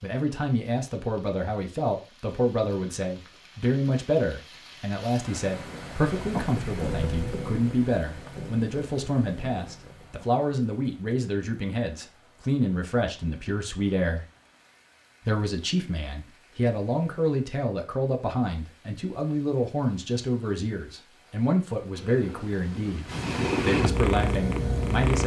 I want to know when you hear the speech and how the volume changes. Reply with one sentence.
The speech can be heard from 0.0 to 14.2 s, at a steady volume; and from 15.2 to 25.2 s, at a steady volume.